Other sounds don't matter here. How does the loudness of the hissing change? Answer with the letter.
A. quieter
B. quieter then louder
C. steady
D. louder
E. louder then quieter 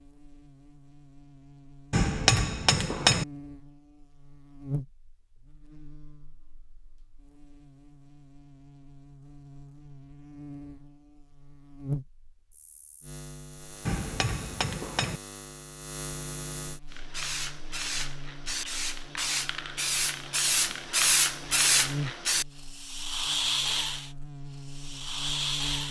E.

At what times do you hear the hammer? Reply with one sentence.
You can hear the hammer from 1.9 to 3.2 s and from 13.8 to 15.2 s.